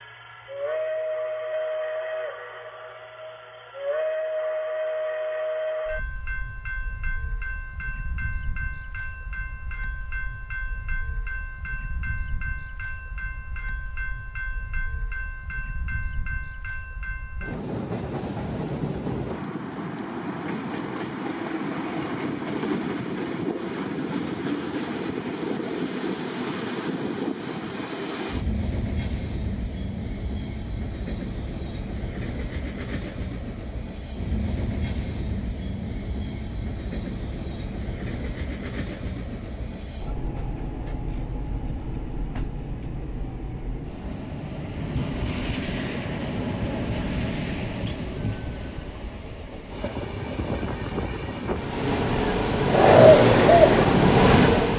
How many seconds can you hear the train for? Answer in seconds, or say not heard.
55 s.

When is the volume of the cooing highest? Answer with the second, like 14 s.
53 s.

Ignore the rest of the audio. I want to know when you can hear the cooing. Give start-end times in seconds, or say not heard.
52.6-54.3.